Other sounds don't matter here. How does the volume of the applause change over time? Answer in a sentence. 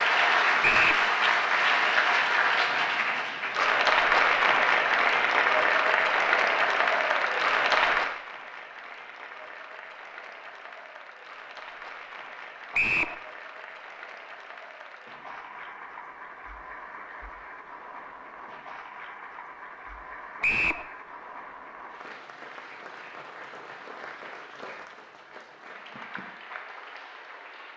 The loudness of the applause goes down.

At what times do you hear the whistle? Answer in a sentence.
The whistle can be heard from 0.6 to 1.1 s, from 12.7 to 13.2 s and from 20.4 to 20.9 s.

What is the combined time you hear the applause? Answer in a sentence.
The applause can be heard for 28 seconds in total.